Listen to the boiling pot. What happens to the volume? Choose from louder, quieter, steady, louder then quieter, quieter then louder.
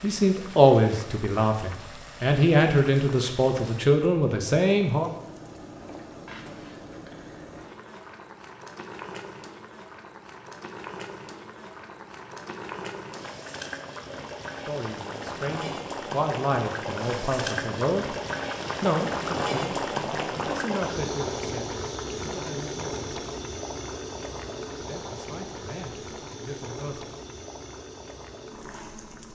louder then quieter.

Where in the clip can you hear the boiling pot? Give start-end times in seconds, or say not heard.
0.0-29.3.